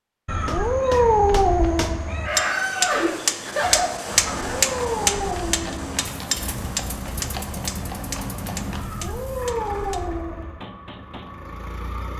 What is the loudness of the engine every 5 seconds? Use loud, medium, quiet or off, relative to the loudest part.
off, loud, loud.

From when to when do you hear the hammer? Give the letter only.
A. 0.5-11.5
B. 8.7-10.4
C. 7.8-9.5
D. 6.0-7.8
A.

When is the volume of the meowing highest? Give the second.
1 s.